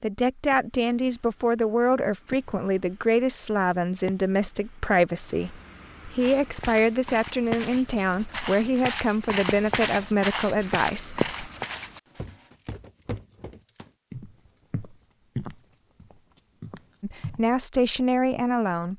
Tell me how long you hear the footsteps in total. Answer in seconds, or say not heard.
11 s.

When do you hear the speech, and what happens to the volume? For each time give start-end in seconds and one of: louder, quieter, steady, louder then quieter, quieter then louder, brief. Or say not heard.
0.0-11.3 steady
17.0-18.9 brief.